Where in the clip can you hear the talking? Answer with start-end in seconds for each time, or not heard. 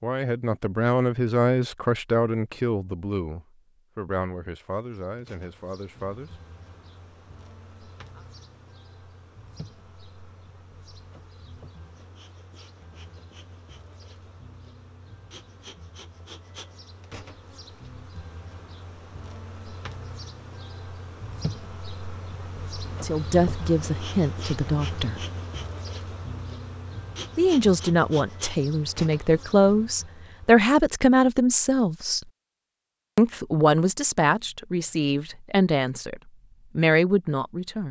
0.0-6.3, 22.9-25.2, 27.4-32.2, 33.1-37.8.